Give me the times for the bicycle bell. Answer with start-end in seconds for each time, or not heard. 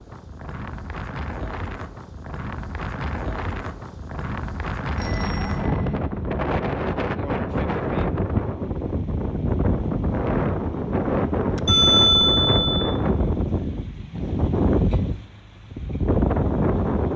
5.0-6.0, 11.7-12.9.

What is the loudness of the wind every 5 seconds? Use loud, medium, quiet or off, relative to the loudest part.
medium, loud, loud, loud.